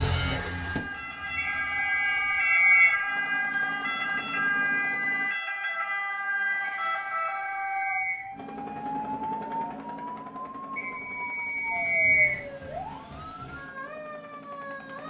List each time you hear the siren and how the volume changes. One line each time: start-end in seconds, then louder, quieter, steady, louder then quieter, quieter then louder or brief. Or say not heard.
0.0-15.0 quieter.